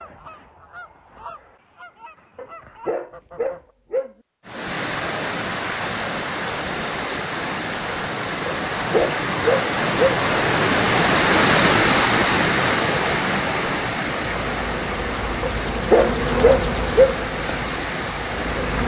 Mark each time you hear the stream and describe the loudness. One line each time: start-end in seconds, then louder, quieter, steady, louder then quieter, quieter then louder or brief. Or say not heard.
4.5-18.8 louder then quieter.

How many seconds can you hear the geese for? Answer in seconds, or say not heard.
4 s.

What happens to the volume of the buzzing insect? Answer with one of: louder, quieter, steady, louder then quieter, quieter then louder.
louder then quieter.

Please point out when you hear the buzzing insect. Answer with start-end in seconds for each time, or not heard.
14.4-18.8.